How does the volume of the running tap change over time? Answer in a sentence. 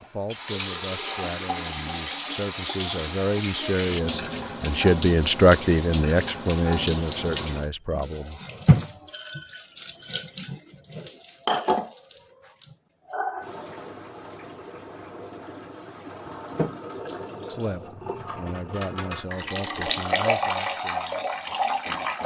The loudness of the running tap goes down, then up.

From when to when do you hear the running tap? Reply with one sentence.
You can hear the running tap from 0.3 to 22.2 s.